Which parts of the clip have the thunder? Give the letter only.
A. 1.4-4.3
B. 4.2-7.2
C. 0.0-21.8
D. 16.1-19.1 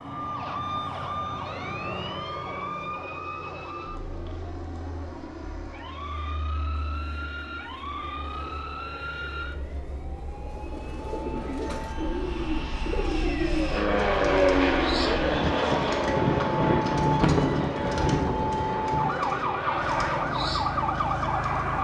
D.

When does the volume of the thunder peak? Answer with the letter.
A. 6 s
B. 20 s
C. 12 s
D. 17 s
D.